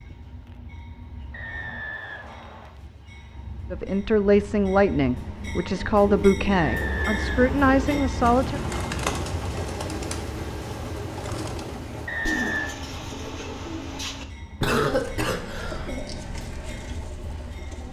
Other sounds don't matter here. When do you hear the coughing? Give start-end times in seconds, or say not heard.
14.6-15.9.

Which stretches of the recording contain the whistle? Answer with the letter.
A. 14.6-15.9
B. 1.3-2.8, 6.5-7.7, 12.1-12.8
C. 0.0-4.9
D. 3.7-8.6
B.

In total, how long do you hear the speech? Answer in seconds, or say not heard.
5 s.